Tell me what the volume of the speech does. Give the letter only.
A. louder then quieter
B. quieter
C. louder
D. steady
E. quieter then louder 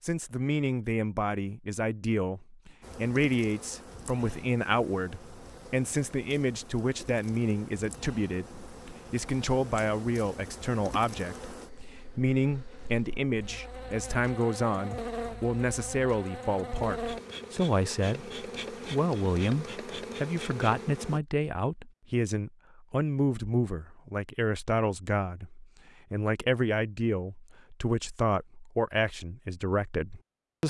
D.